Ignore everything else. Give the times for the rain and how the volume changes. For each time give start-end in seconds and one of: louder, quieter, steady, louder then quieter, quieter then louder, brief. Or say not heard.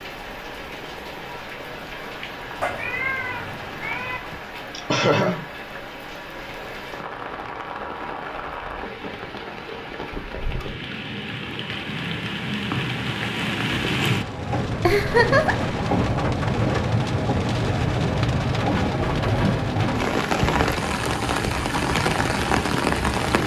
0.0-23.4 louder.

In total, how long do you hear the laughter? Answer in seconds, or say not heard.
2 s.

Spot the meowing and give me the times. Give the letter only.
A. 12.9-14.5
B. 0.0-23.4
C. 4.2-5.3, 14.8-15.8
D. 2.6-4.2
D.